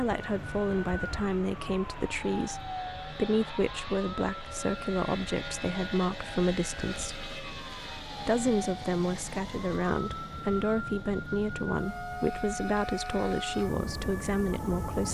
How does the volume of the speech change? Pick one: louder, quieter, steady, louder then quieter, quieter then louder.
steady.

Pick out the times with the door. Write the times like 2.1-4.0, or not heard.
not heard.